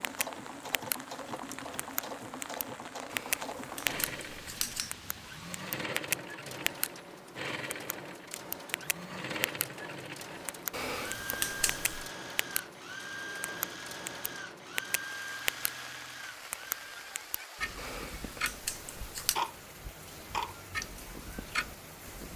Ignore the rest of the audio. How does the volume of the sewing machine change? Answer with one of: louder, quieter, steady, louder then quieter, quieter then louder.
steady.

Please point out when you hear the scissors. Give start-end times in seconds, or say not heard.
3.1-4.9, 10.7-12.1, 17.8-19.4.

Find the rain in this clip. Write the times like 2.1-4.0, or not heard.
0.0-22.3.